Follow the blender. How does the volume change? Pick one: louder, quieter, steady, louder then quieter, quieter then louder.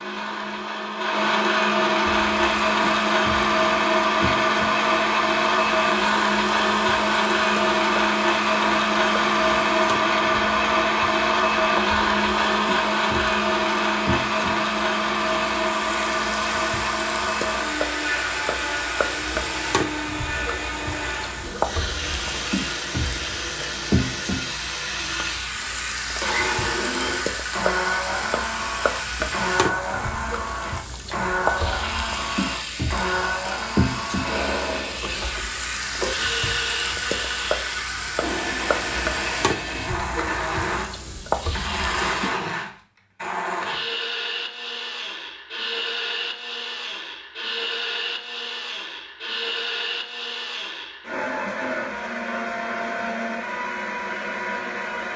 quieter.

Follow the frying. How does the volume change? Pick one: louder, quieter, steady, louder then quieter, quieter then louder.
louder.